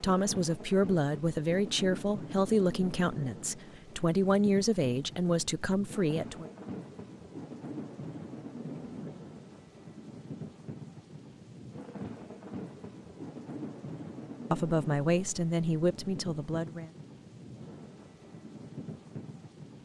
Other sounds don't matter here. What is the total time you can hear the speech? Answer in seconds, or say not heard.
9 s.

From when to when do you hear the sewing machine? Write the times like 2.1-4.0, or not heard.
not heard.